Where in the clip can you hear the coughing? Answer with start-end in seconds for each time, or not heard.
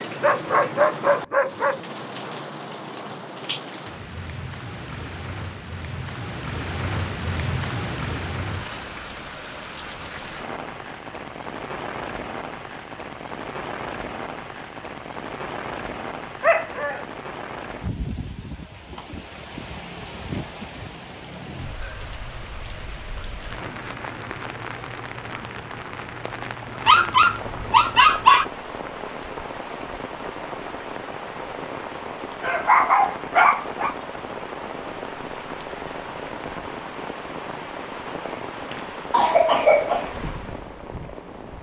38.2-40.1.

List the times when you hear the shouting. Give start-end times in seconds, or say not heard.
not heard.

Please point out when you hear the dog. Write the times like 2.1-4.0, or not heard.
0.2-1.8, 16.4-17.1, 26.9-28.4, 32.4-34.0.